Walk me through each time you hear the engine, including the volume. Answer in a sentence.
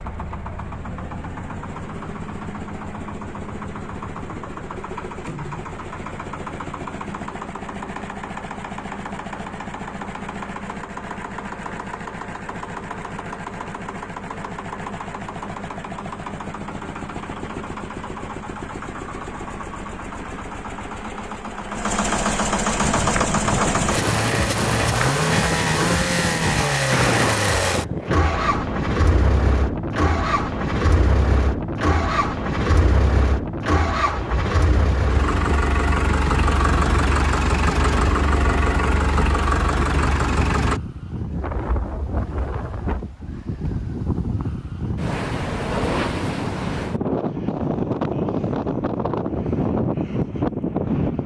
The engine can be heard from 0.0 to 40.8 s, getting louder.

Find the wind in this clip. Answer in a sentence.
You can hear the wind from 22.8 to 51.2 s.